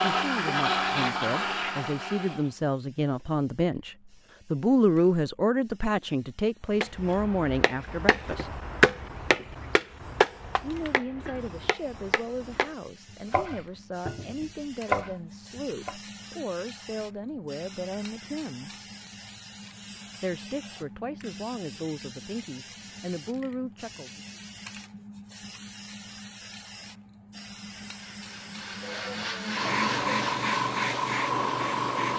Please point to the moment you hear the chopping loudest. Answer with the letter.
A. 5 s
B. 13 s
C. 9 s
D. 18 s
C.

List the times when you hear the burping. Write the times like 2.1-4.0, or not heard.
not heard.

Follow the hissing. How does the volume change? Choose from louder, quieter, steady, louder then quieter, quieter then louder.
louder.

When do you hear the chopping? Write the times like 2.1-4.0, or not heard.
6.8-15.9.